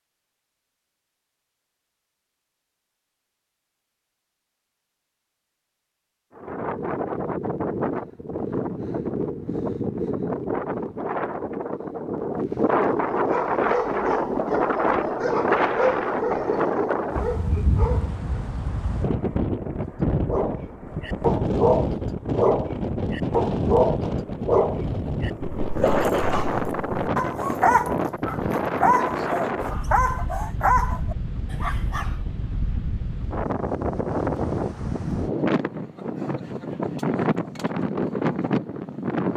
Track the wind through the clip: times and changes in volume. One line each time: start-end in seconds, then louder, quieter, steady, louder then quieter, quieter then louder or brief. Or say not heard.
6.3-39.3 steady.